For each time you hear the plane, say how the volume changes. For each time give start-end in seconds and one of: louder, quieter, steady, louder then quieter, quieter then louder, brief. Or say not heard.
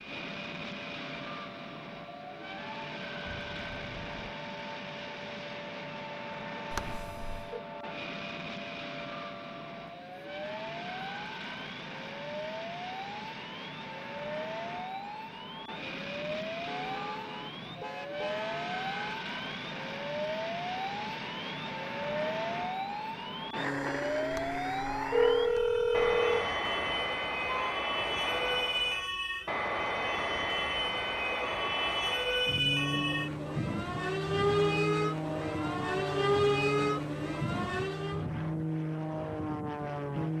0.0-40.3 louder.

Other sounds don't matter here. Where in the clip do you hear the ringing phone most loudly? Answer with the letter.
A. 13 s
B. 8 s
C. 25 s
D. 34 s
C.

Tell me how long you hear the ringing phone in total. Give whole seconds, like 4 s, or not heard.
3 s.